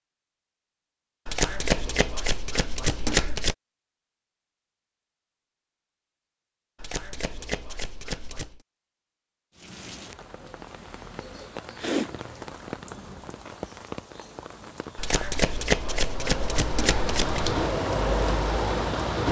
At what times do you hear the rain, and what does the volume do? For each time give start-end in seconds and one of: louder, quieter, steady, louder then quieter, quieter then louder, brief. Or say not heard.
9.6-19.2 louder.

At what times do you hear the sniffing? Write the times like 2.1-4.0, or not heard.
11.8-12.2.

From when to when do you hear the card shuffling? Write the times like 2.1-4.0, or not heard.
1.2-3.5, 6.8-8.6, 14.9-17.6.